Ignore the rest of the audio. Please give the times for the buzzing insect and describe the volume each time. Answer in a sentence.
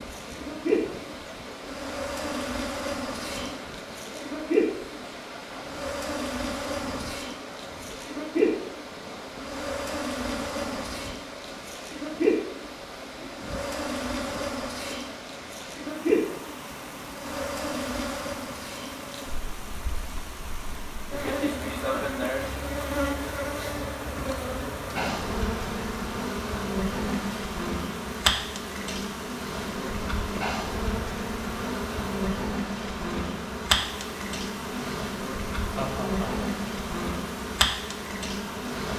The buzzing insect can be heard from 0.0 to 38.9 s, at a steady volume.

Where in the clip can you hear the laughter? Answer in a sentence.
The laughter can be heard from 35.8 to 36.5 s.